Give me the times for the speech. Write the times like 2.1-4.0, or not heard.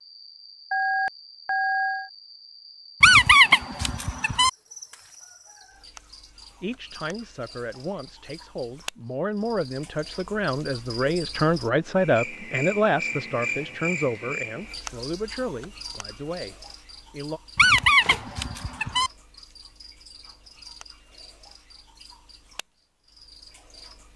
6.6-17.4.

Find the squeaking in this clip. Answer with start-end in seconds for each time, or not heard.
3.0-4.5, 17.6-19.1.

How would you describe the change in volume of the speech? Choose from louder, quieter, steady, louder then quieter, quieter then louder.
louder then quieter.